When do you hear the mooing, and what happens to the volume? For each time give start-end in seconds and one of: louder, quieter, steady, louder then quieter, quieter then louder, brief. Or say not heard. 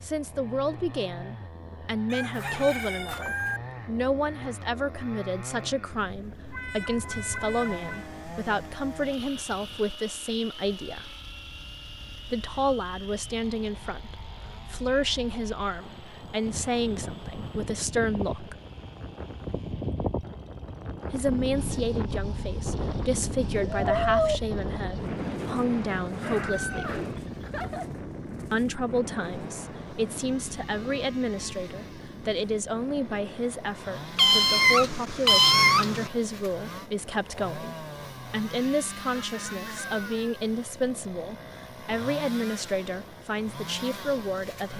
not heard.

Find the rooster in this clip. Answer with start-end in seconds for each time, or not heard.
2.1-3.6, 26.2-27.9, 39.1-40.5.